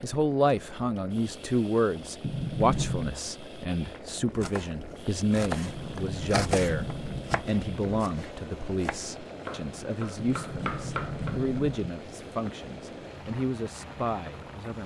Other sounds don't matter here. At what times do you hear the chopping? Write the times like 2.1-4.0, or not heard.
4.0-11.6.